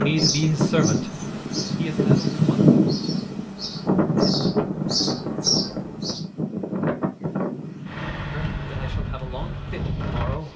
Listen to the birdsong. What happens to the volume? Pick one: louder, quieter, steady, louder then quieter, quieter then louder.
louder.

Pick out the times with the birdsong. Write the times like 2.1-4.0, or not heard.
0.0-6.2.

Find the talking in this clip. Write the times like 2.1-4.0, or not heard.
0.0-1.1, 1.8-2.6, 8.3-10.5.